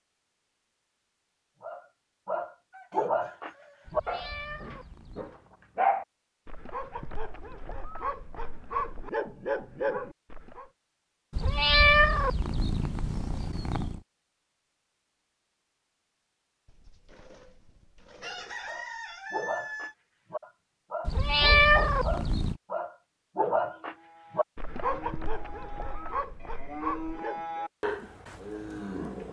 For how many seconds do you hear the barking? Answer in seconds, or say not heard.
18 s.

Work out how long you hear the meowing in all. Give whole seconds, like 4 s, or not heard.
6 s.